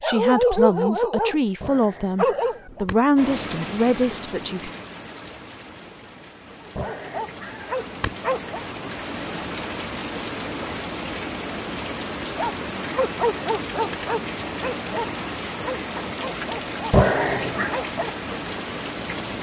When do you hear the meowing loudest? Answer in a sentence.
The volume of the meowing peaks at 17 seconds.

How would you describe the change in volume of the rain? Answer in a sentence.
The loudness of the rain goes up.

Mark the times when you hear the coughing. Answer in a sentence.
The coughing can't be heard in this clip.